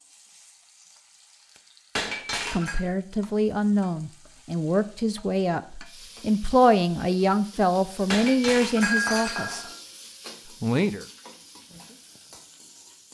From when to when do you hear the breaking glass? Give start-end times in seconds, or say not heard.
1.9-2.8, 8.1-9.8.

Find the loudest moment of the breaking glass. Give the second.
9 s.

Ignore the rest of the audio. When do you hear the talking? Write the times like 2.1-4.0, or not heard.
2.5-9.7, 10.6-11.1.